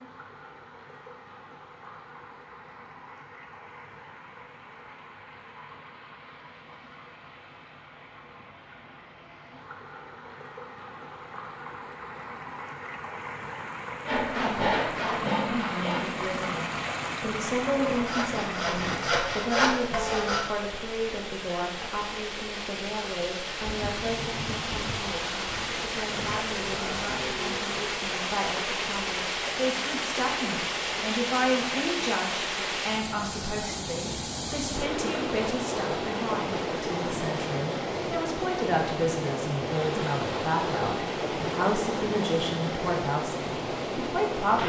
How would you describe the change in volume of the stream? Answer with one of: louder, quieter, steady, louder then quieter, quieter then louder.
louder.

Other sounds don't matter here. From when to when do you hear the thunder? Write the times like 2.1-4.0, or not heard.
23.6-27.6.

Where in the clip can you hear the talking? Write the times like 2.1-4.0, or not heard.
15.4-44.6.